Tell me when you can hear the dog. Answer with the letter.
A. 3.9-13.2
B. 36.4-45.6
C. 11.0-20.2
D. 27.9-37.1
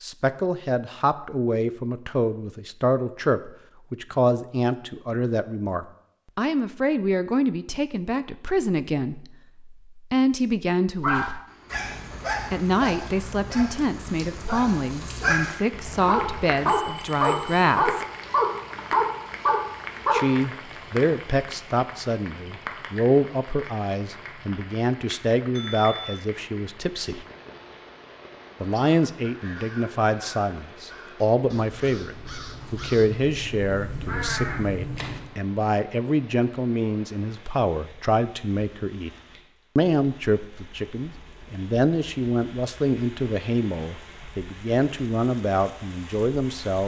C.